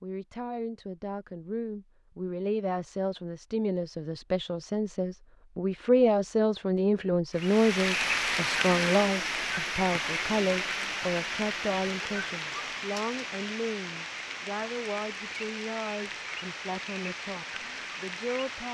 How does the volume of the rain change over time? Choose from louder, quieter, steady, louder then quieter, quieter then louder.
quieter.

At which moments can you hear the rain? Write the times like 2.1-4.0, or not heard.
7.3-18.6.